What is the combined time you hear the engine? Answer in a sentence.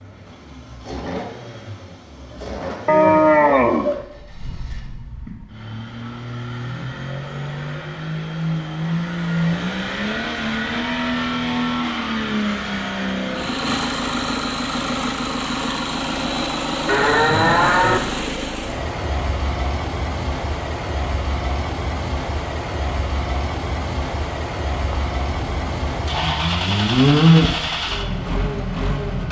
The engine can be heard for 29 seconds in total.